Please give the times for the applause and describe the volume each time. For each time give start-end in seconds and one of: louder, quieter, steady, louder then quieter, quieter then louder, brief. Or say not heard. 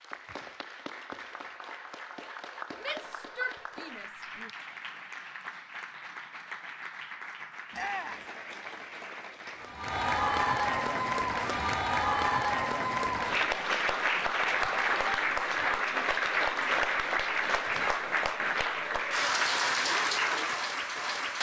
0.0-21.3 louder.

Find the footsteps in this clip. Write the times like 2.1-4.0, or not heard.
not heard.